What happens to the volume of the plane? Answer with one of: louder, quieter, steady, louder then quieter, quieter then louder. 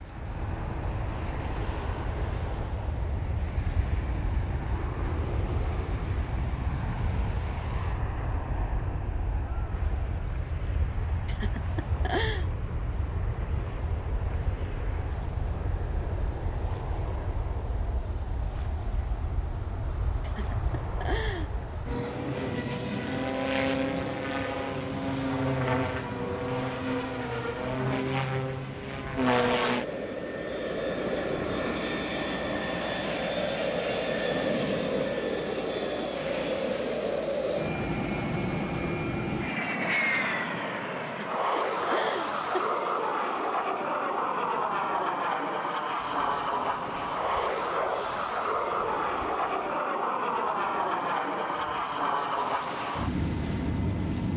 louder.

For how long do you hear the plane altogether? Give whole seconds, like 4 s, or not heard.
54 s.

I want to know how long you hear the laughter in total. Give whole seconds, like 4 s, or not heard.
4 s.